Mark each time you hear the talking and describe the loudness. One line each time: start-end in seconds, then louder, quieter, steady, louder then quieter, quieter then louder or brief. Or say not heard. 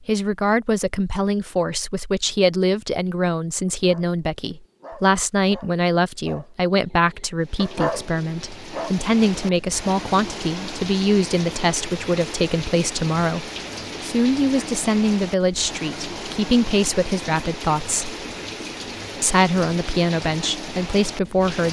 0.1-18.1 steady
19.2-21.6 brief.